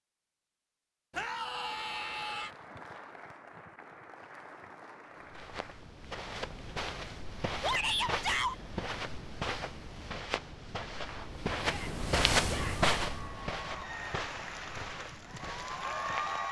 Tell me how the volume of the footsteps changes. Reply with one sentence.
The loudness of the footsteps goes up, then down.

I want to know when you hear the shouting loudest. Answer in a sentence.
The loudest moment of the shouting is at 8 seconds.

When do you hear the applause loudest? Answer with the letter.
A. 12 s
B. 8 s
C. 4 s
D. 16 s
D.